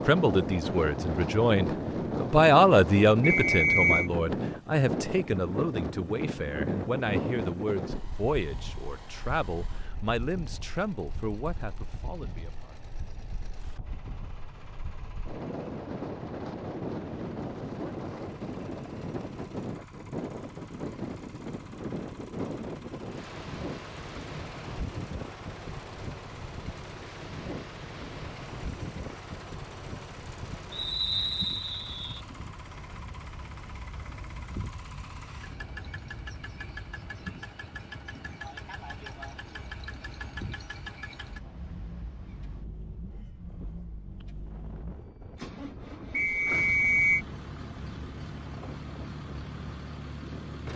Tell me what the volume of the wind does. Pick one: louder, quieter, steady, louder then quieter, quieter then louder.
quieter.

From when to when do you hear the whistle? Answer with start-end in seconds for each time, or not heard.
3.2-4.1, 30.7-32.2, 46.1-47.2.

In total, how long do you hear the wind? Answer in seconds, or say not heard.
51 s.